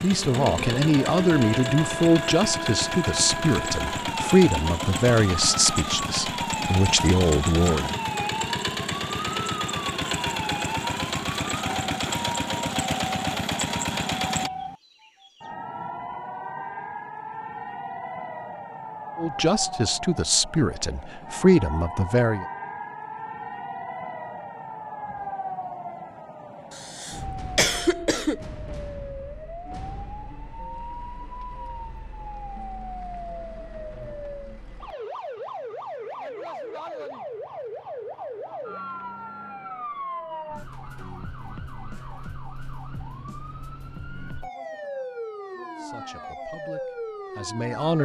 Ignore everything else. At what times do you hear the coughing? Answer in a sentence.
You can hear the coughing from 26.7 to 28.4 s.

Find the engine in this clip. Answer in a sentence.
You can hear the engine from 0.0 to 14.5 s.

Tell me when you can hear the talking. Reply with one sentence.
The talking can be heard from 0.0 to 8.0 s, from 19.1 to 22.4 s and from 45.8 to 48.0 s.